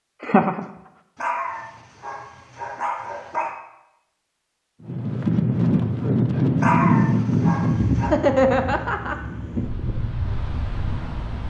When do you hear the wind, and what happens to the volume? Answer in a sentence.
You can hear the wind from 4.8 to 11.4 s, getting quieter.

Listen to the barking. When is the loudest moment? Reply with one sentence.
The loudest moment of the barking is at 7 seconds.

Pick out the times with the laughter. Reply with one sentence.
You can hear the laughter from 0.2 to 0.7 s and from 8.0 to 9.2 s.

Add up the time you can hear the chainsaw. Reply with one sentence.
The chainsaw can't be heard in this clip.